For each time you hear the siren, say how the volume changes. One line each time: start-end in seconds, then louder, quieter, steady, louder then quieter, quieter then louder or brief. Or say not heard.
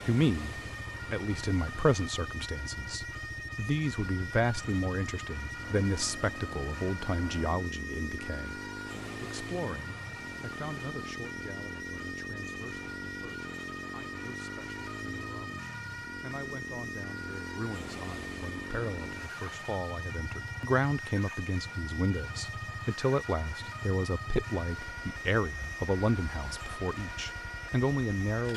0.0-28.5 steady.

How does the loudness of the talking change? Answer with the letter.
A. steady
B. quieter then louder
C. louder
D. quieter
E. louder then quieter
B.